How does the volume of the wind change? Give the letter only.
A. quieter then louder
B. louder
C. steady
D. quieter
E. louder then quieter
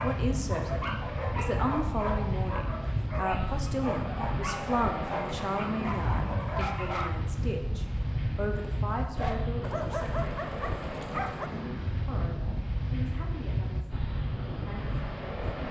C.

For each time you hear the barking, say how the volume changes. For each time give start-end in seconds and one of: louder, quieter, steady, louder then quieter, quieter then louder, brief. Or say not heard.
0.0-7.1 steady
9.0-11.5 brief.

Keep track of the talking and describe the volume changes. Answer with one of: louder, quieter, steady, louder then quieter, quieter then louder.
quieter.